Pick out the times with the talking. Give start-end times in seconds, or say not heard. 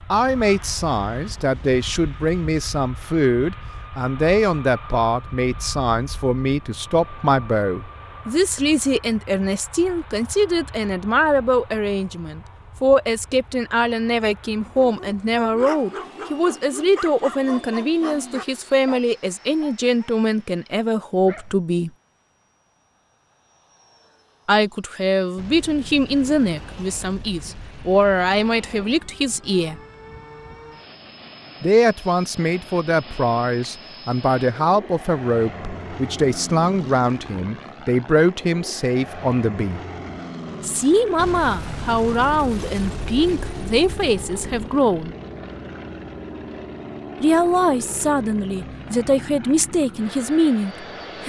0.1-21.9, 24.4-29.8, 31.6-39.8, 40.6-45.1, 47.2-51.2.